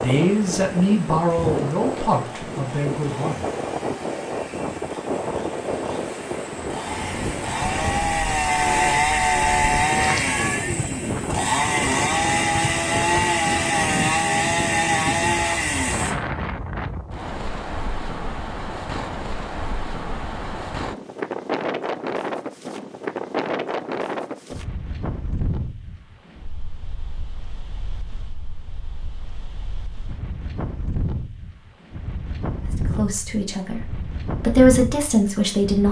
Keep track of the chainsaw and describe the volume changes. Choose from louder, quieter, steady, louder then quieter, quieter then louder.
louder.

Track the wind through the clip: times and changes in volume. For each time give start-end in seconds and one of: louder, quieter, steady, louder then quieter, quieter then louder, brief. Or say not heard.
0.0-35.8 quieter.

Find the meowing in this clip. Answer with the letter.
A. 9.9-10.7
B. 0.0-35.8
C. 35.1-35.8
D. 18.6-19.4
A.